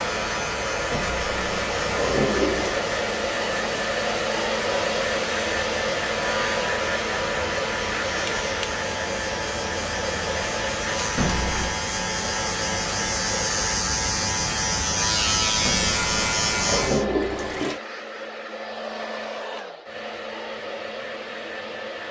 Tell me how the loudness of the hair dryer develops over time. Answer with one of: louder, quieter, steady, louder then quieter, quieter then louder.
quieter.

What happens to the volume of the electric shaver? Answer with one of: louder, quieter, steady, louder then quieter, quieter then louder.
louder.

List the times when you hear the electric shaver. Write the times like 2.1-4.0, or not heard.
0.0-17.1.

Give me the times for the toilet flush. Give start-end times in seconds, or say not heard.
0.9-2.9, 11.2-11.8, 15.7-17.8.